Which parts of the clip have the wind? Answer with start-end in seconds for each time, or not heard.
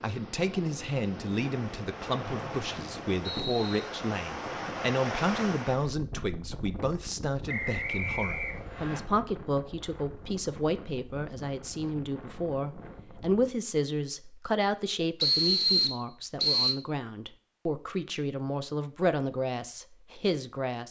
0.0-13.6.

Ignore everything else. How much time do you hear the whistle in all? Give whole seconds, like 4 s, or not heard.
5 s.